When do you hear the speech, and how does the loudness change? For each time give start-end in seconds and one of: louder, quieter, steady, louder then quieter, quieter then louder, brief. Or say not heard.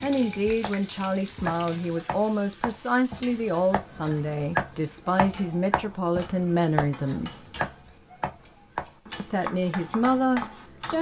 0.0-7.5 steady
9.2-10.9 brief.